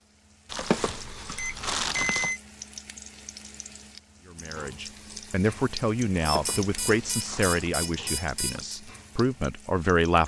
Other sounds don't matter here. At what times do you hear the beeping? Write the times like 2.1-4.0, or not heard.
1.4-2.4, 6.2-8.8.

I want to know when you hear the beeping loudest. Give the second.
2 s.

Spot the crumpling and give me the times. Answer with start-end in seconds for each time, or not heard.
0.5-2.4, 6.2-7.8.